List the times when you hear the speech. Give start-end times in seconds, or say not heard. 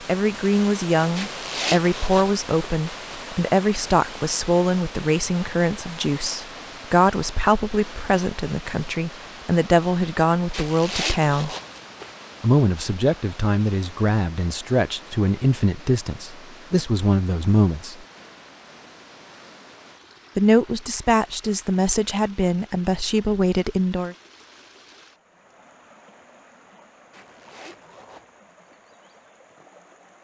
0.1-11.6, 12.4-17.9, 20.4-24.1.